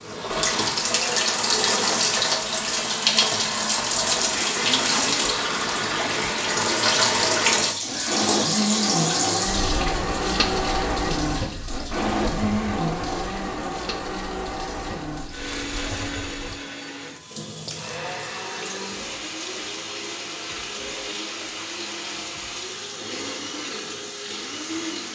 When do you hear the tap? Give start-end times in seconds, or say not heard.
0.0-25.0.